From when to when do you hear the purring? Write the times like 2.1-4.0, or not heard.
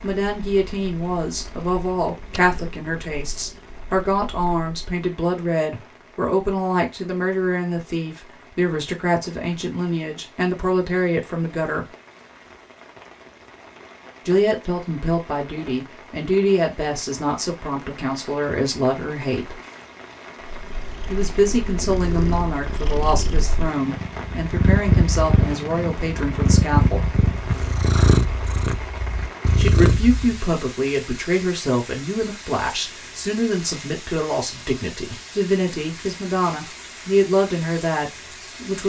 0.0-4.9, 20.4-30.4.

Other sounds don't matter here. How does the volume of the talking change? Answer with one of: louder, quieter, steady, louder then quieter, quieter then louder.
steady.